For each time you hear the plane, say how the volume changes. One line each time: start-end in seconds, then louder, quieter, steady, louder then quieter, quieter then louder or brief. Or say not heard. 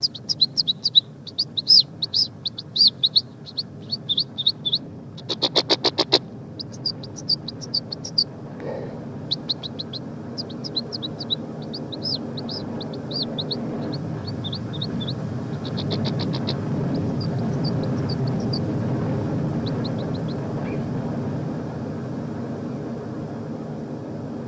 0.0-24.4 louder.